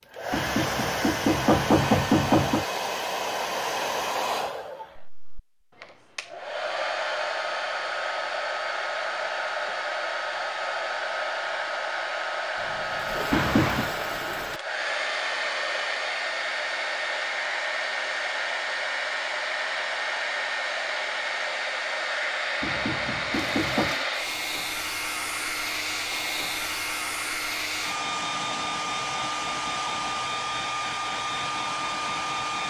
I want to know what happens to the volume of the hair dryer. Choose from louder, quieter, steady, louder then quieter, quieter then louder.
steady.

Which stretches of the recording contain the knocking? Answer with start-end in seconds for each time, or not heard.
0.3-2.6, 13.3-13.9, 22.6-23.9.